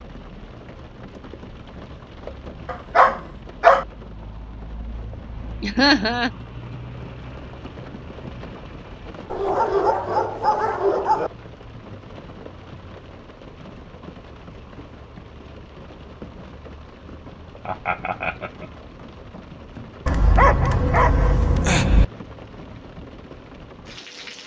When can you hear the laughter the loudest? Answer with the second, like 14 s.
6 s.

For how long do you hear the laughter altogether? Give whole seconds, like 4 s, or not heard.
2 s.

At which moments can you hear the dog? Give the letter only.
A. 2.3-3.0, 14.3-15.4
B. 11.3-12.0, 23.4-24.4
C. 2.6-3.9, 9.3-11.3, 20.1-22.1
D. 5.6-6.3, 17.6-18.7
C.